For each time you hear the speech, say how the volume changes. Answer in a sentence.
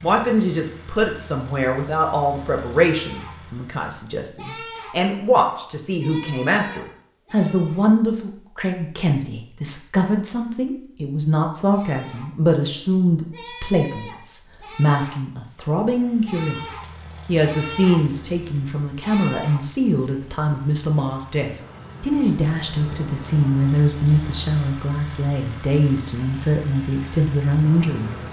You can hear the speech from 0.0 to 28.1 s, at a steady volume.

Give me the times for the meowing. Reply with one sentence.
The meowing can't be heard in this clip.